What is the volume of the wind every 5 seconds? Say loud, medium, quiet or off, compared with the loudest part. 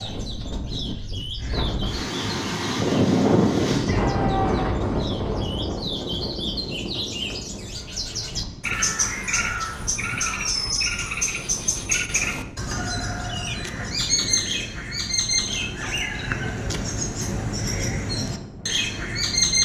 loud, medium, quiet, quiet.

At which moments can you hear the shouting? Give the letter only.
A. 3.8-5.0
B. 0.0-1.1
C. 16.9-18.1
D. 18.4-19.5
A.